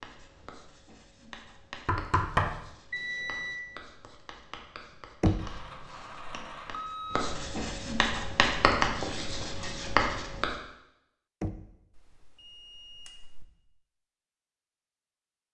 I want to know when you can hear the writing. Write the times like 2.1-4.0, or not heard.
0.0-10.6.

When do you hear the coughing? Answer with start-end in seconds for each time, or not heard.
not heard.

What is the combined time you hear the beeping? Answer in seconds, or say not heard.
4 s.